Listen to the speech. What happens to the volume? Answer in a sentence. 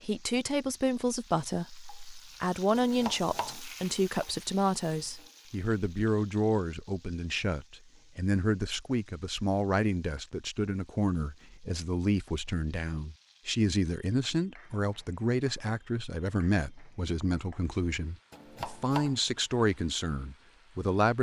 The loudness of the speech stays about the same.